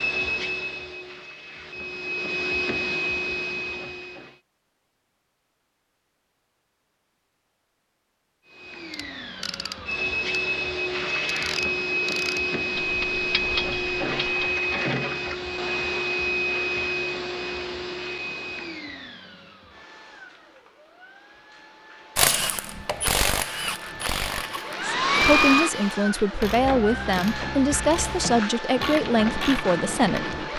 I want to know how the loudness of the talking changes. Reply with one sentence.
The loudness of the talking stays about the same.